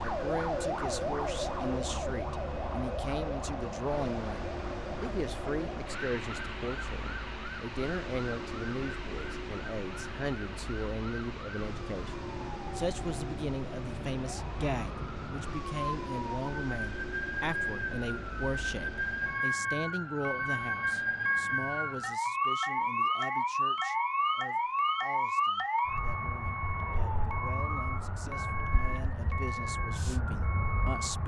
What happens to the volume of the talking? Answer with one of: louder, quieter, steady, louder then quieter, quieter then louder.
quieter.